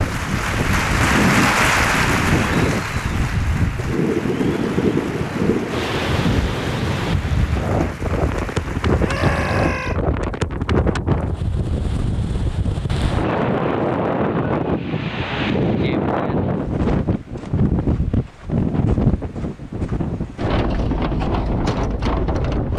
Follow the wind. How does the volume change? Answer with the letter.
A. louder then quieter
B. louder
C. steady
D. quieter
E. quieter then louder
C.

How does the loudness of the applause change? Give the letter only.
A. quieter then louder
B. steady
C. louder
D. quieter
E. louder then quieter
D.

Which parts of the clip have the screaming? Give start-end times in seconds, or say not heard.
9.0-10.0.